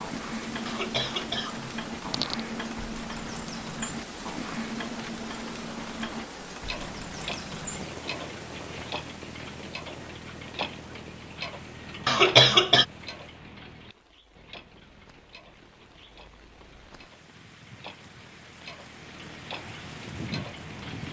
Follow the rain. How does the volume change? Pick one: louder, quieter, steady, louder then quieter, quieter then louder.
quieter then louder.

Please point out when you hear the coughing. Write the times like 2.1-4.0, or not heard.
0.7-2.4, 12.1-12.8.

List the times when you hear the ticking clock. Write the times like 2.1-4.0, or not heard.
0.0-21.0.